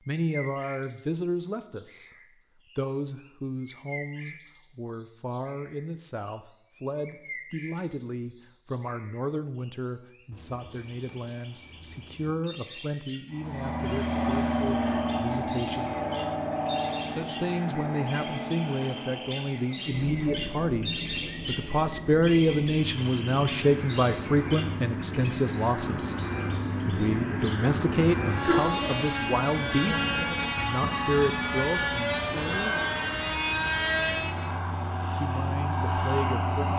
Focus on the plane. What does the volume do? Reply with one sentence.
The volume of the plane goes down, then up.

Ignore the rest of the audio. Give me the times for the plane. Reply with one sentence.
The plane can be heard from 13.3 to 36.7 s.